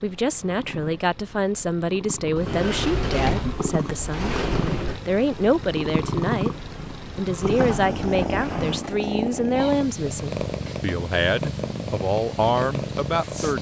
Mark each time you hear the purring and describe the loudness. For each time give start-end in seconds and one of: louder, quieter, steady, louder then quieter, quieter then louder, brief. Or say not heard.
0.0-13.5 louder.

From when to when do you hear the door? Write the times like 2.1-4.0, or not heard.
2.4-5.0, 7.4-8.8.